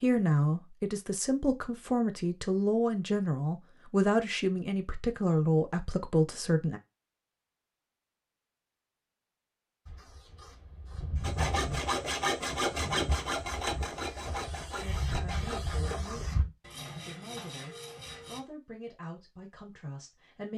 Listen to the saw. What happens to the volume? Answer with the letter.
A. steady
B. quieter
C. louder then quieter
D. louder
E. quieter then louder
B.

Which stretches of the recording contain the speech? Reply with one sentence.
You can hear the speech from 0.0 to 6.8 s and from 14.8 to 20.5 s.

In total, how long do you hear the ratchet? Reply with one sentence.
The ratchet can't be heard in this clip.